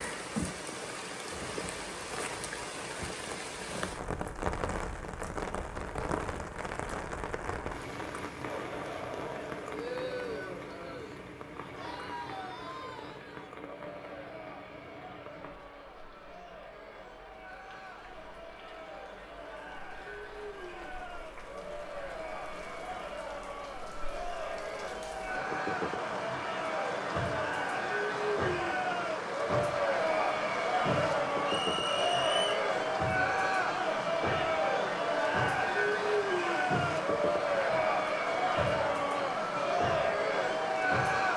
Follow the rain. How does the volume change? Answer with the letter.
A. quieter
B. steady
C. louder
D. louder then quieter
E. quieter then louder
E.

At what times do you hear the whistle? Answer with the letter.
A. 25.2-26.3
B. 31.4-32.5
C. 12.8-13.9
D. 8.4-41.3
B.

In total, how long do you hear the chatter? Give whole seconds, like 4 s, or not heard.
33 s.